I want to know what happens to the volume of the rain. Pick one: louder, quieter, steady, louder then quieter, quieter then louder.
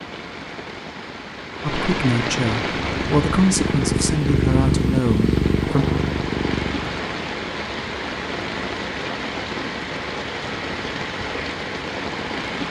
steady.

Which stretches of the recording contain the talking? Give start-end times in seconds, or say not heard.
1.6-5.8.